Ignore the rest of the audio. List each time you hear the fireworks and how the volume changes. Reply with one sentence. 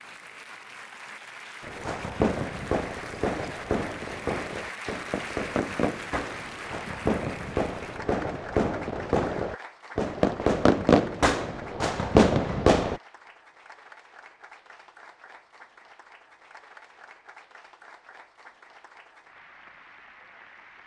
You can hear the fireworks from 1.6 to 13.0 s, getting louder.